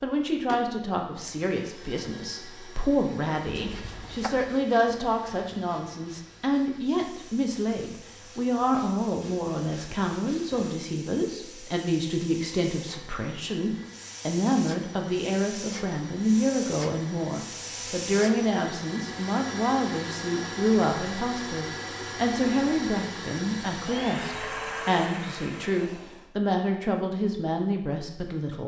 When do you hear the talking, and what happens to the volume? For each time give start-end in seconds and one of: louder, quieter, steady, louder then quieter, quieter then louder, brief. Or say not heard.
0.0-28.6 steady.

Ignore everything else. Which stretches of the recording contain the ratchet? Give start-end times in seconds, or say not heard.
not heard.